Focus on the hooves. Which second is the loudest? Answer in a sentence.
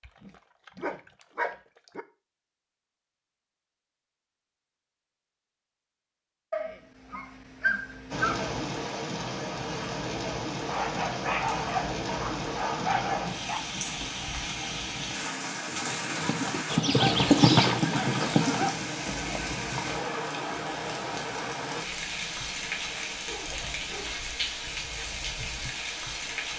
The loudest moment of the hooves is at 17 seconds.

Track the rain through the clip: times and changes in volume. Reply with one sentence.
You can hear the rain from 8.1 to 26.5 s, at a steady volume.